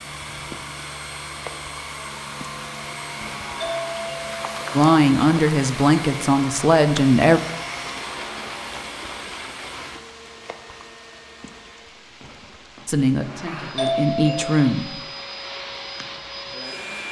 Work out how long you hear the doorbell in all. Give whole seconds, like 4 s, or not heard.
2 s.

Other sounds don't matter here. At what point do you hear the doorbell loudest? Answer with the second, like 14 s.
14 s.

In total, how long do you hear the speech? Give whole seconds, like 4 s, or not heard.
5 s.